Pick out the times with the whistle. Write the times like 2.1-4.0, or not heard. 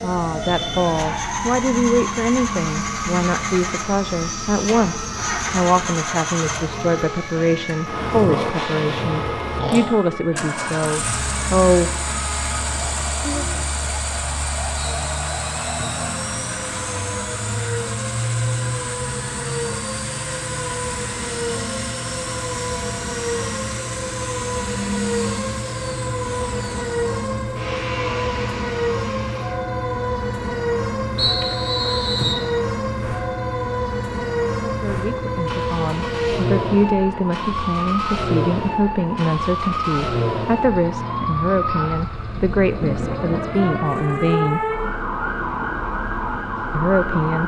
14.8-16.1, 31.1-32.5.